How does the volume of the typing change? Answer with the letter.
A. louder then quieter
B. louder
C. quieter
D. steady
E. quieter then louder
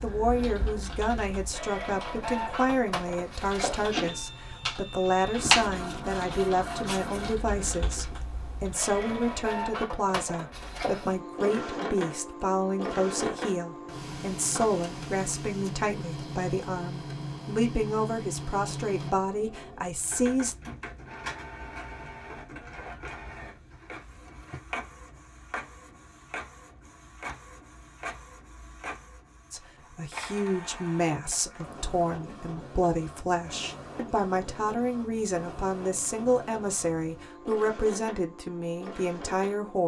A.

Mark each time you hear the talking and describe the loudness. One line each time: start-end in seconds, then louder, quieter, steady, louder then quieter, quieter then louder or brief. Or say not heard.
0.0-20.6 steady
29.5-39.8 steady.